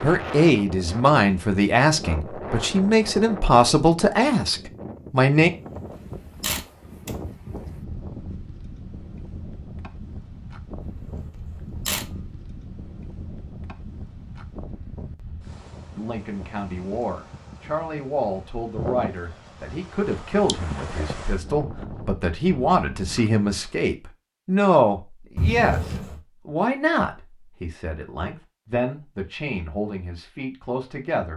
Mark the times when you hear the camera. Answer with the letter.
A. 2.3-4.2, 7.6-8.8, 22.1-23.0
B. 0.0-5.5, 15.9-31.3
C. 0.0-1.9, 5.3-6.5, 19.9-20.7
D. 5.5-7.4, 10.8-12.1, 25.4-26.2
D.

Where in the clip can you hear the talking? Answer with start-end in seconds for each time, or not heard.
0.0-5.5, 15.9-31.3.